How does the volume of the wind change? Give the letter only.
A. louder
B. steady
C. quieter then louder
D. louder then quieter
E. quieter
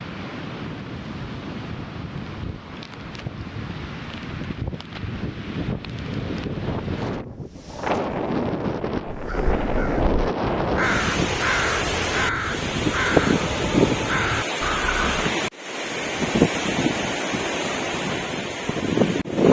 A.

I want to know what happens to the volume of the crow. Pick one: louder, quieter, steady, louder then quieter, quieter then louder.
louder.